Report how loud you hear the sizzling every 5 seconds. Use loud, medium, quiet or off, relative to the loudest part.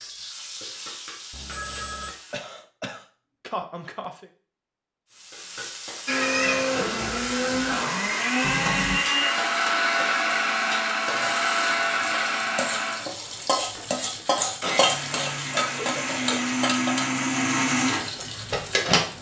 medium, medium, loud, loud.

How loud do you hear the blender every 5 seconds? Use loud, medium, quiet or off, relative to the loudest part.
off, loud, loud, loud.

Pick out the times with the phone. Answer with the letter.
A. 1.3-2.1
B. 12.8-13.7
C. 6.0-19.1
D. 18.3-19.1
A.